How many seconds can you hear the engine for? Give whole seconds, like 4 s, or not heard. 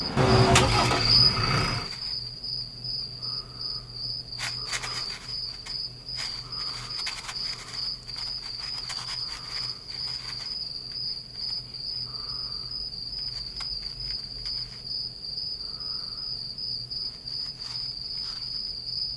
2 s.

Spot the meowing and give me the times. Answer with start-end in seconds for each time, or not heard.
not heard.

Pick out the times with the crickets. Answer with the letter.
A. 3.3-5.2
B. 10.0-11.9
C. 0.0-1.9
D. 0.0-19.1
D.